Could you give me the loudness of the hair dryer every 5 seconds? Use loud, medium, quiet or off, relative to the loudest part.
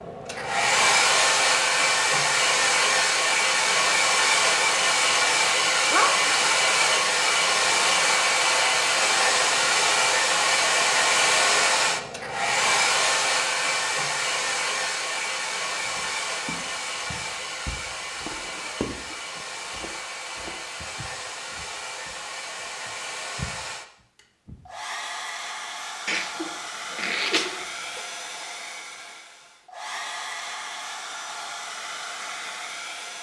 loud, loud, loud, medium, quiet, quiet, quiet.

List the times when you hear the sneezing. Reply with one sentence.
The sneezing can be heard from 5.8 to 6.3 s and from 26.1 to 28.0 s.